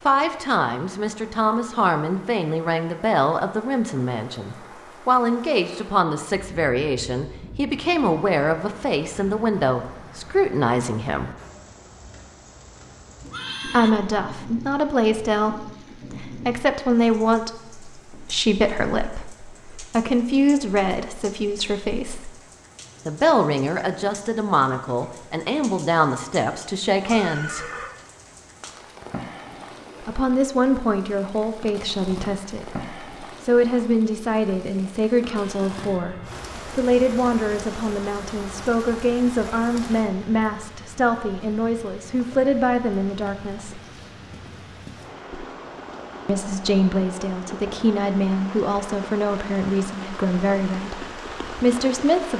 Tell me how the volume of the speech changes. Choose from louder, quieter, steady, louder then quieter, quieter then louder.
steady.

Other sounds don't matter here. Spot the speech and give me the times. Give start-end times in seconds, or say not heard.
0.1-11.3, 13.7-22.3, 23.1-27.6, 30.1-43.8, 46.2-52.3.